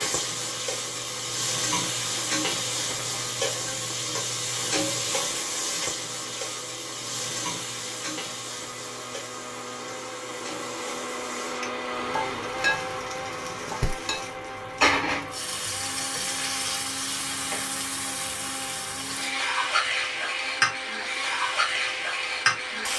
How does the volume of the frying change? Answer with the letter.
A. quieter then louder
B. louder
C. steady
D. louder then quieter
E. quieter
A.